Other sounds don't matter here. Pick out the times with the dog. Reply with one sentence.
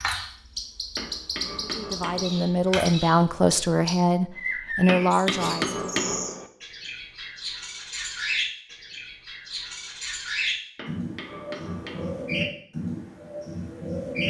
The dog can't be heard in this clip.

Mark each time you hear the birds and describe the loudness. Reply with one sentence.
The birds can be heard from 0.0 to 14.2 s, at a steady volume.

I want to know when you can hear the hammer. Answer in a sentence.
You can hear the hammer from 0.9 to 2.5 s, from 4.8 to 6.5 s and from 10.8 to 12.4 s.